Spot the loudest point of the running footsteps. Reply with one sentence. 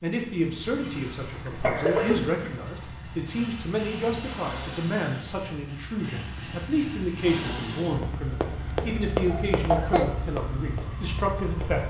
The volume of the running footsteps peaks at 9 seconds.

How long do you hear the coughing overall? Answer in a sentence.
The coughing can be heard for 2 seconds in total.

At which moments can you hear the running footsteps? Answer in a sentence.
You can hear the running footsteps from 8.0 to 11.8 s.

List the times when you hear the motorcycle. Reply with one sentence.
The motorcycle can be heard from 0.1 to 11.8 s.